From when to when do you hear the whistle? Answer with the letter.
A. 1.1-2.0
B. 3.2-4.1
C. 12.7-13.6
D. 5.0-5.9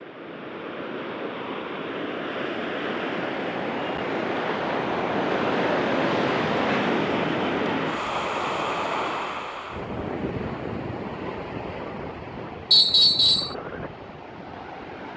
C.